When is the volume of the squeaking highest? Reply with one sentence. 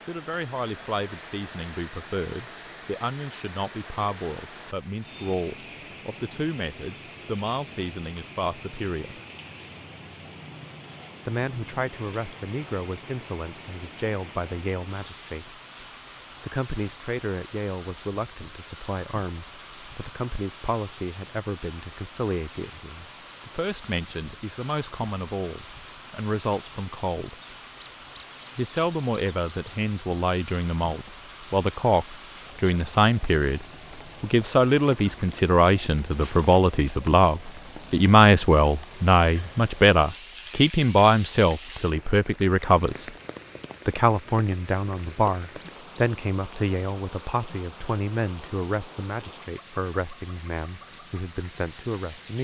The loudest moment of the squeaking is at 28 seconds.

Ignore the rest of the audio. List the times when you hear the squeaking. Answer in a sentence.
The squeaking can be heard from 1.8 to 2.5 s, from 27.2 to 29.8 s and from 45.0 to 46.2 s.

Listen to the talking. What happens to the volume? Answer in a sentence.
The loudness of the talking goes up, then down.